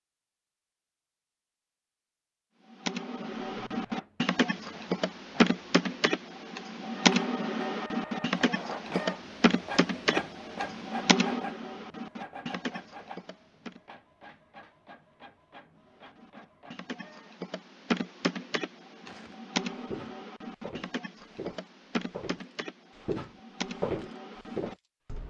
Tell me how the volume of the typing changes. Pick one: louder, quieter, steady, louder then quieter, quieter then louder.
quieter.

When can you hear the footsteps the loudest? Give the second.
24 s.